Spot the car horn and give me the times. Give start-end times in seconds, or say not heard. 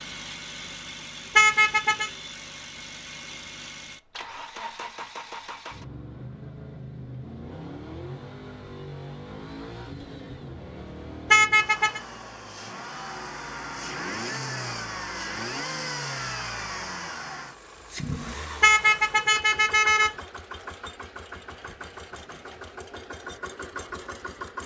1.4-2.1, 11.3-12.0, 18.6-20.1.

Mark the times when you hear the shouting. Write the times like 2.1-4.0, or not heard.
not heard.